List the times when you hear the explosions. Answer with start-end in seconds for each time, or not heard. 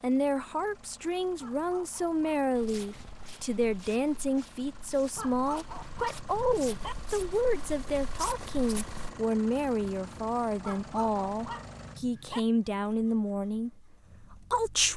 not heard.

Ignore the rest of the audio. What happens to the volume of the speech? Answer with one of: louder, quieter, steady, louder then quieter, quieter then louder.
steady.